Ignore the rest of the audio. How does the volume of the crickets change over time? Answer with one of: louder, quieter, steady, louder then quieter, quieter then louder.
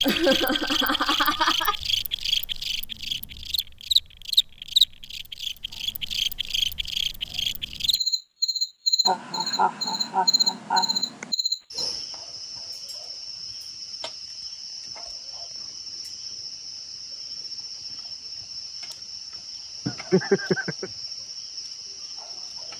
quieter.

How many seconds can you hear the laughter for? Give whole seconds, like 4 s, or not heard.
5 s.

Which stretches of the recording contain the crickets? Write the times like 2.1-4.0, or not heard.
0.0-22.7.